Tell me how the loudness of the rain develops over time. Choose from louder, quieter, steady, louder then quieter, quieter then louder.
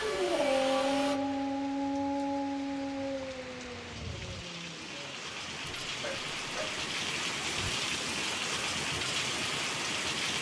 louder.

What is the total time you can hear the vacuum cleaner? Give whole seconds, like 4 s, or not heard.
2 s.